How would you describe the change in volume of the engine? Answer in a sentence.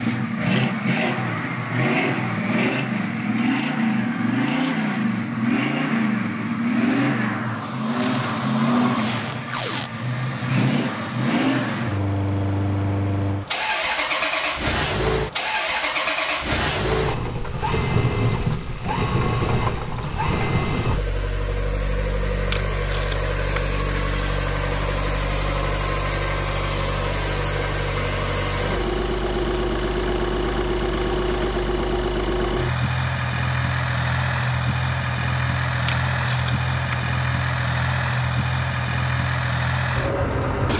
The loudness of the engine stays about the same.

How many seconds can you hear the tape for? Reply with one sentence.
You can hear the tape for 4 seconds altogether.